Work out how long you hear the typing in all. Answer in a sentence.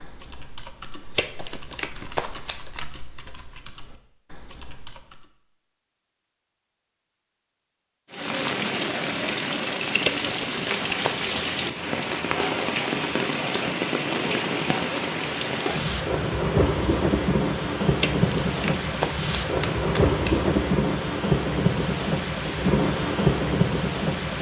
You can hear the typing for 5 seconds altogether.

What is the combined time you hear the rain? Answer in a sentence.
You can hear the rain for 16 seconds altogether.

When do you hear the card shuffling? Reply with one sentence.
The card shuffling can be heard from 1.1 to 2.9 s, from 10.0 to 11.3 s and from 18.0 to 20.6 s.